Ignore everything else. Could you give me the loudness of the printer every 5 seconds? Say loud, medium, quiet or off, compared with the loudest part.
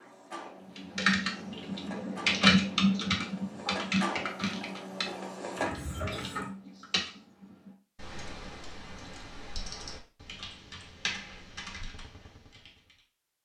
medium, loud, off.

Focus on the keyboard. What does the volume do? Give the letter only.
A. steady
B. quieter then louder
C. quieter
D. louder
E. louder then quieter
C.